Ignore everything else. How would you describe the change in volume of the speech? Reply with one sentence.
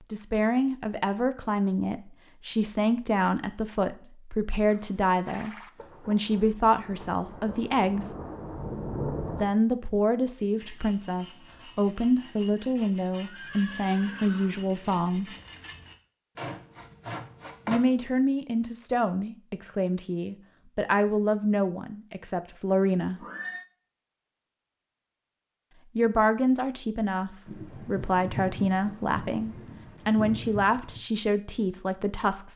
The volume of the speech stays about the same.